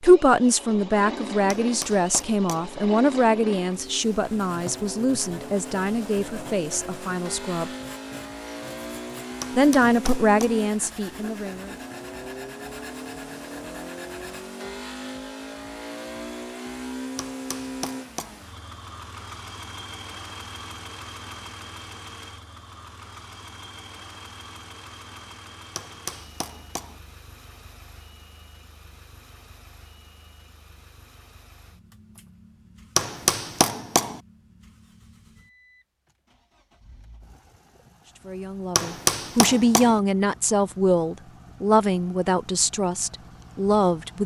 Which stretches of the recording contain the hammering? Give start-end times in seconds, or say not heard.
1.5-2.8, 9.4-10.7, 17.1-18.4, 25.8-27.0, 33.0-34.2, 38.8-40.0.